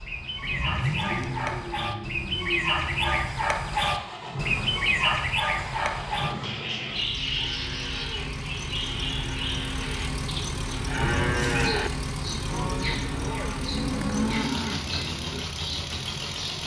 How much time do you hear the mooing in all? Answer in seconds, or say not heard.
8 s.